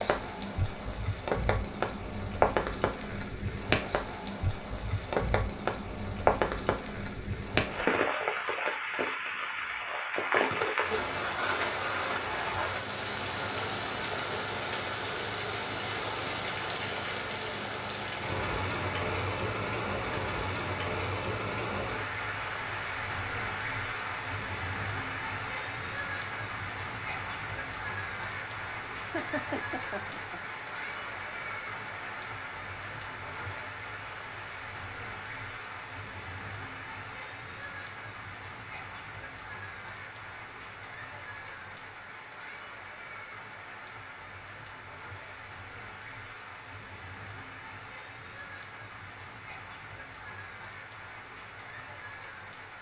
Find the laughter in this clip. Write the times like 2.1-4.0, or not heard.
29.0-30.4.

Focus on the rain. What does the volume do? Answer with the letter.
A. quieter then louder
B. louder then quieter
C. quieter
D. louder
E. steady
C.